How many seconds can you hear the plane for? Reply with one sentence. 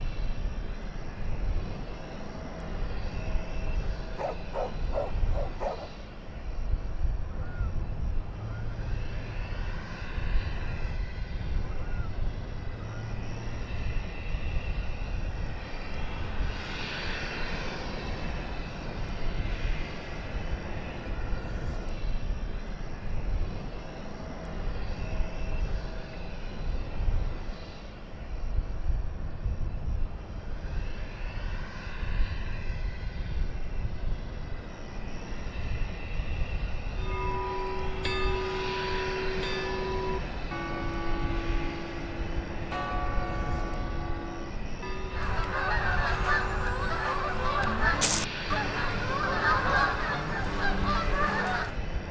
You can hear the plane for 52 seconds altogether.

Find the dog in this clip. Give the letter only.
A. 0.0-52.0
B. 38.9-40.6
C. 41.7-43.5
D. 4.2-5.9
D.